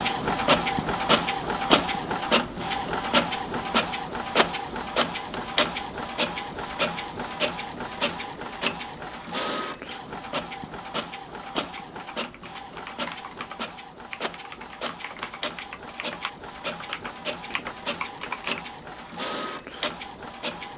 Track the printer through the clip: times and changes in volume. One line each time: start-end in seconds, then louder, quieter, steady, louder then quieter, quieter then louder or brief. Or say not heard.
0.0-20.7 quieter.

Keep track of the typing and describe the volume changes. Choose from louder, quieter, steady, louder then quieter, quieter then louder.
louder.